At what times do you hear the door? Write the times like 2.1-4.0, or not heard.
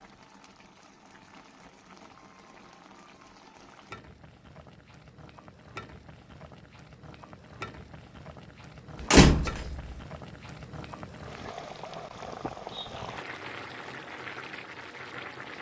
9.0-9.8.